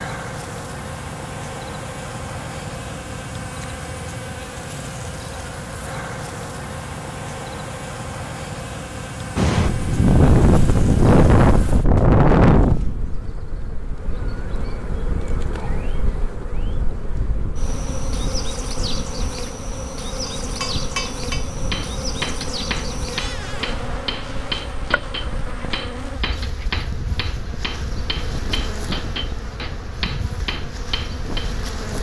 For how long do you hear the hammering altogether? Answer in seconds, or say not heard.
11 s.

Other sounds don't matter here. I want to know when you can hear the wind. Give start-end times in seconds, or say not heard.
9.3-31.9.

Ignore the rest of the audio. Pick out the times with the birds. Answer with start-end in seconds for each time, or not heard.
not heard.